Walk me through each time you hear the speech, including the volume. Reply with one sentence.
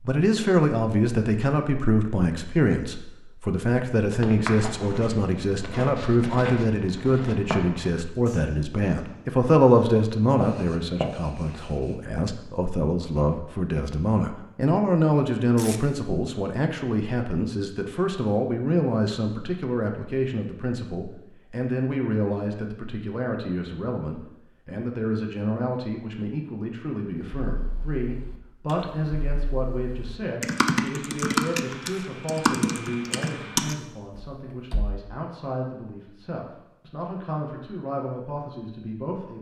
You can hear the speech from 0.0 to 39.3 s, getting quieter.